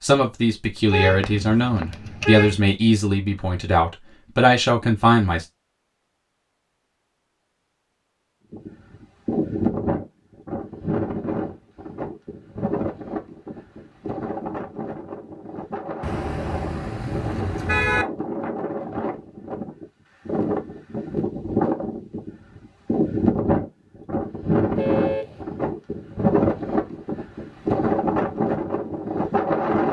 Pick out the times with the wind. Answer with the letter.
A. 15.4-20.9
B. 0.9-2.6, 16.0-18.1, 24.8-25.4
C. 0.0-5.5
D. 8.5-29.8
D.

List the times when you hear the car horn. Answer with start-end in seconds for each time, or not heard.
0.9-2.6, 16.0-18.1, 24.8-25.4.